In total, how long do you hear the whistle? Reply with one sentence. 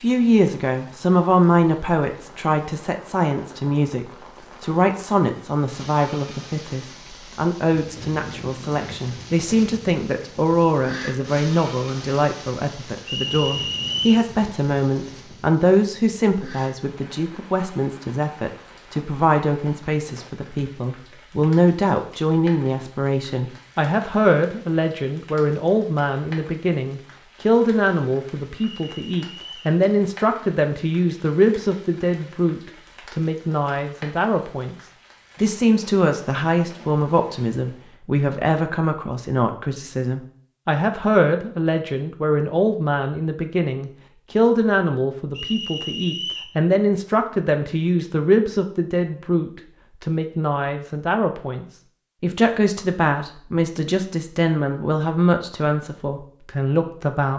You can hear the whistle for 3 seconds altogether.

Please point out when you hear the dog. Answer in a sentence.
You can't hear the dog here.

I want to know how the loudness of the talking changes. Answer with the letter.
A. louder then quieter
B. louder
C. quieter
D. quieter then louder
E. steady
E.